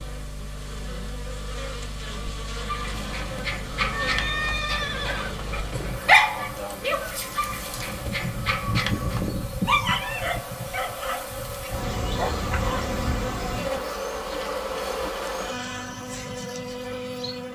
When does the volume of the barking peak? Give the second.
6 s.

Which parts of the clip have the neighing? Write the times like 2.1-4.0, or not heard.
3.9-5.3.